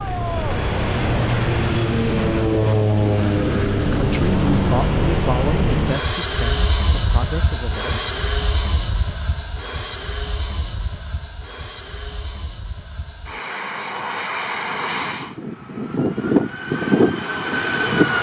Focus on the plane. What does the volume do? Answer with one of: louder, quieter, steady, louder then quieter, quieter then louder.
quieter then louder.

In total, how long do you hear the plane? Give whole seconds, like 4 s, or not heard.
18 s.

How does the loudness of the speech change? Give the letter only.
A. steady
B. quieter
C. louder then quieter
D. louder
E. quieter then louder
B.